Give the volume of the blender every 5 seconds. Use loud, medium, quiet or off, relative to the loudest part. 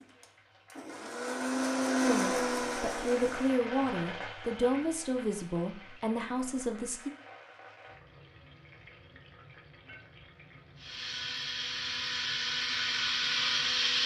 loud, off, loud.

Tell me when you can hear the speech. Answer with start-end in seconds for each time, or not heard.
2.0-7.1.